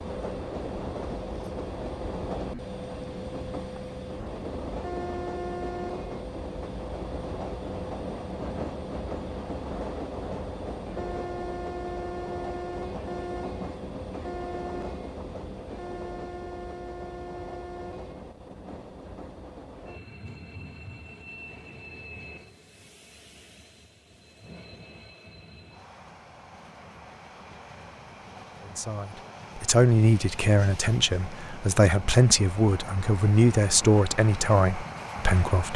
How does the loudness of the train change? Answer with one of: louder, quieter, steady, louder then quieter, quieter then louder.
quieter then louder.